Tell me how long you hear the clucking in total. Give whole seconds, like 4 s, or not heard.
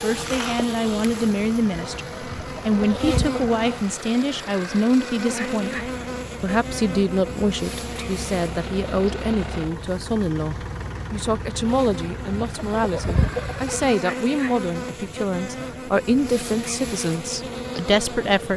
3 s.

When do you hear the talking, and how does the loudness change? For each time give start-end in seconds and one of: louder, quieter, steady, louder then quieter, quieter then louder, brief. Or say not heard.
0.0-18.5 steady.